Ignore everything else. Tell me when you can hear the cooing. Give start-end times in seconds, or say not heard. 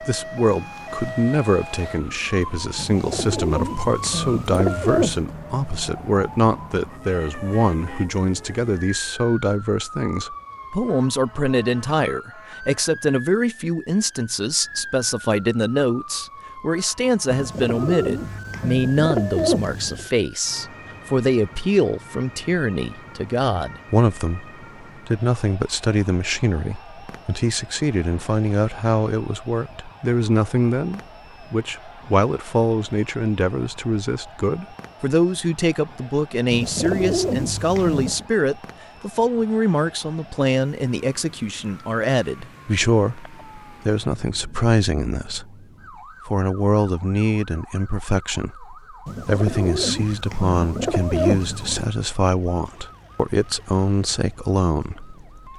2.8-5.2, 17.2-20.1, 36.5-38.2, 49.0-51.9.